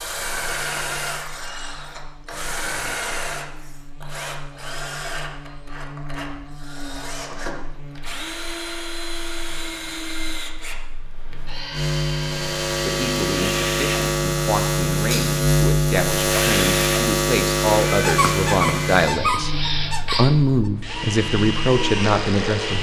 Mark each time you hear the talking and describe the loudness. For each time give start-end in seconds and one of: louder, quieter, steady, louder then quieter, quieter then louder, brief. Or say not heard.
12.8-19.5 louder
20.1-22.7 brief.